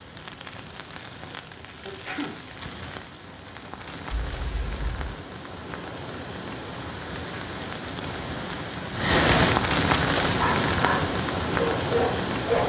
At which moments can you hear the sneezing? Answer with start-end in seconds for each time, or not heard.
1.9-2.4.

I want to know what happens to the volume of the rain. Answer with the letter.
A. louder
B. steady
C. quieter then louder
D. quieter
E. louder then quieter
A.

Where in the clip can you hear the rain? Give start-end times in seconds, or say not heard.
0.0-12.6.